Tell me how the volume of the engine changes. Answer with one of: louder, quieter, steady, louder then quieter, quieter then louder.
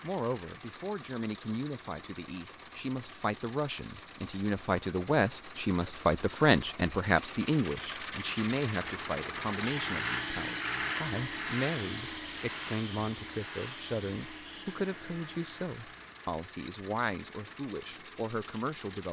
louder then quieter.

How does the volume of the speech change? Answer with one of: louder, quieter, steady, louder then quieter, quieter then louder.
louder then quieter.